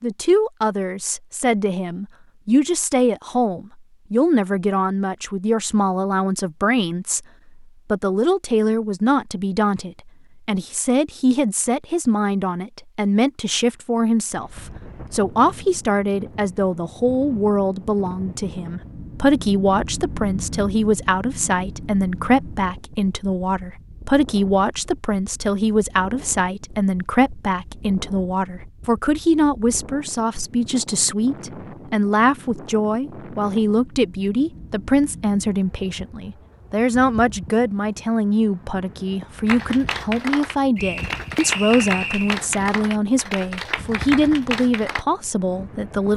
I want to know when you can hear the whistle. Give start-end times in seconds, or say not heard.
40.8-42.4.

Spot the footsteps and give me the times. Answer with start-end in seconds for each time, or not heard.
not heard.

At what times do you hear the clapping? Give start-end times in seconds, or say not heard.
39.5-45.0.